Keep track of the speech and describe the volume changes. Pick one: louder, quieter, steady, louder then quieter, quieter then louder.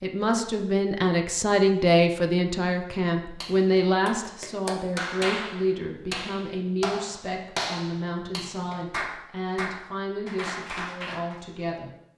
quieter.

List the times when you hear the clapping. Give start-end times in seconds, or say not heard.
3.4-11.4.